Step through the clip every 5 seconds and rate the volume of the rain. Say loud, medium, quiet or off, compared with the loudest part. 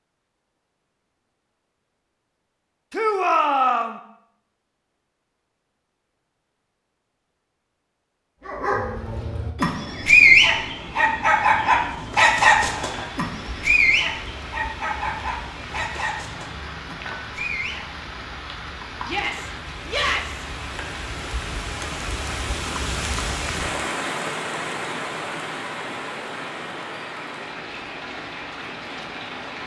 off, off, medium, medium, loud, loud.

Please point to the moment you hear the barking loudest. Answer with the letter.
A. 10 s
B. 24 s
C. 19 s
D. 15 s
A.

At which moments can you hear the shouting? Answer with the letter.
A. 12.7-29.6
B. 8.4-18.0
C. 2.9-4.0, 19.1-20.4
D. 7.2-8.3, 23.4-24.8
C.